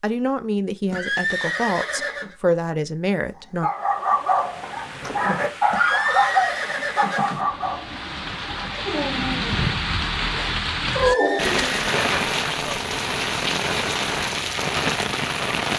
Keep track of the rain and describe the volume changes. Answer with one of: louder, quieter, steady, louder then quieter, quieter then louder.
louder.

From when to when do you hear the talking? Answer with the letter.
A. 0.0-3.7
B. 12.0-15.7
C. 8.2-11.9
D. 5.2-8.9
A.